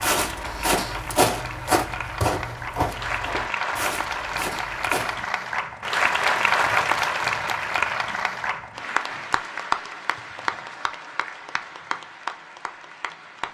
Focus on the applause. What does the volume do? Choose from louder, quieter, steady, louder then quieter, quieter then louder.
louder then quieter.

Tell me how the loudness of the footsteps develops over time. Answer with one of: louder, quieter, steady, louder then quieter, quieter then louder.
quieter.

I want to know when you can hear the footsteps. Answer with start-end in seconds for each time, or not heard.
0.0-5.2.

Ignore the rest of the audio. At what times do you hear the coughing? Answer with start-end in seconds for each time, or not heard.
not heard.